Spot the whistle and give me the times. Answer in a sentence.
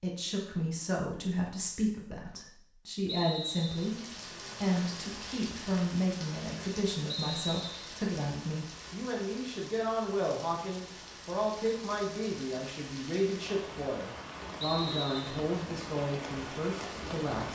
You can hear the whistle from 3.0 to 3.9 s, from 7.0 to 8.0 s and from 14.6 to 15.4 s.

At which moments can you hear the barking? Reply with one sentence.
The barking can't be heard in this clip.